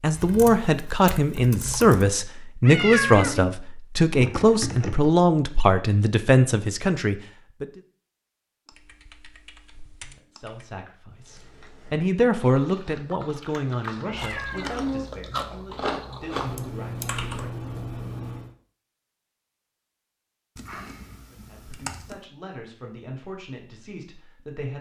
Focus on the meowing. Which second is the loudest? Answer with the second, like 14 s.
3 s.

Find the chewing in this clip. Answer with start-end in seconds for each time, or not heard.
11.1-16.7.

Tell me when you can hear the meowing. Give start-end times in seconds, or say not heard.
2.6-3.5, 14.0-15.1.